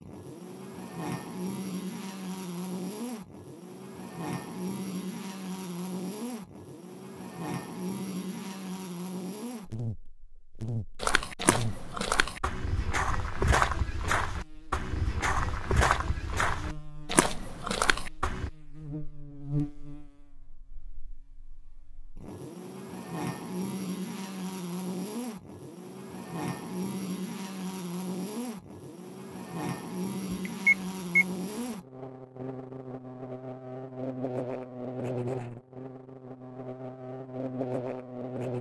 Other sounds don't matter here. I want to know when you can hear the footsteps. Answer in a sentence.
The footsteps can be heard from 11.0 to 18.5 s.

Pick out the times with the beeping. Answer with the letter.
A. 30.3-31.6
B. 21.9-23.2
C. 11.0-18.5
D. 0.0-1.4
A.